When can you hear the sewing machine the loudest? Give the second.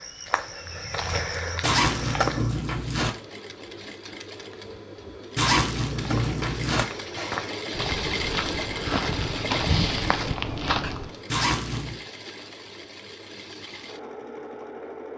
8 s.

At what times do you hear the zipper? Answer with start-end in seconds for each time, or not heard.
1.6-3.1, 5.3-6.8, 11.3-12.0.